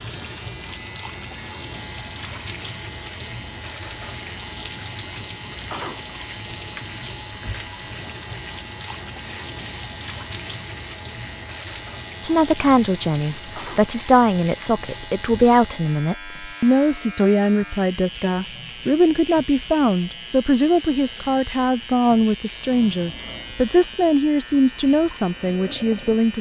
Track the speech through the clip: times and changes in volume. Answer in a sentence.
You can hear the speech from 12.2 to 26.3 s, at a steady volume.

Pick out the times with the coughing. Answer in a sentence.
The coughing can't be heard in this clip.